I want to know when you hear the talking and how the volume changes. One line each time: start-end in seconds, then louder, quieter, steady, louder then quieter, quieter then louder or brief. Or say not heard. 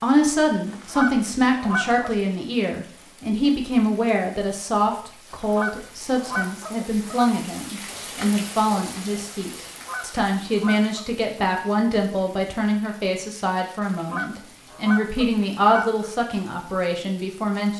0.0-17.7 steady.